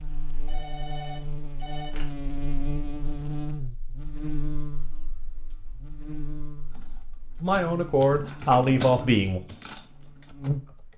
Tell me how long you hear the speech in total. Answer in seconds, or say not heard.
2 s.